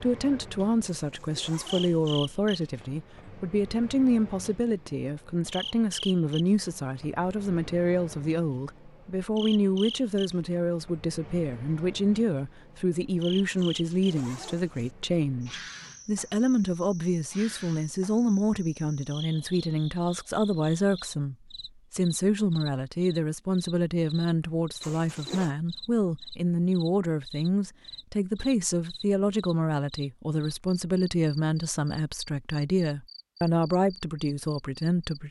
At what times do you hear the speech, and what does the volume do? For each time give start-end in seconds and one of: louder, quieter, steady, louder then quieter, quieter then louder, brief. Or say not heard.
0.0-35.2 steady.